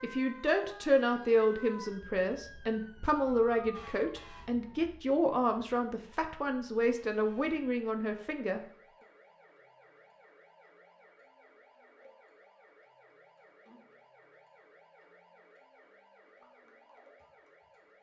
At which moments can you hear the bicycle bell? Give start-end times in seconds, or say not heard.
not heard.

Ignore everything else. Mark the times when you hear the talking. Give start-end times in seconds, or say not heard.
0.0-8.6.